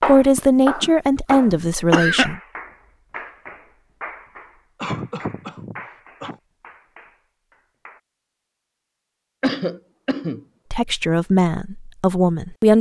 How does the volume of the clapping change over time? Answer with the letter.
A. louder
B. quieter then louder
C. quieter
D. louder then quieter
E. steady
C.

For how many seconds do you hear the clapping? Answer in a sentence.
You can hear the clapping for 8 seconds altogether.